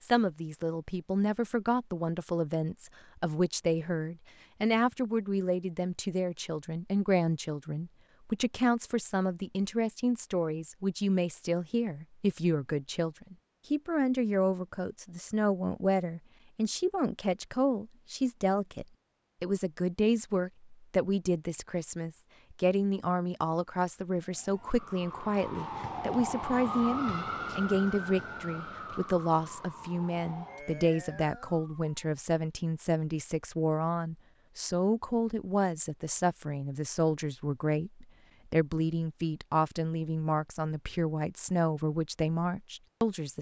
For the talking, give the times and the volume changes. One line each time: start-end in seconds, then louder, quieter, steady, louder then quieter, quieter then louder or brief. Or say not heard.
0.0-43.3 steady.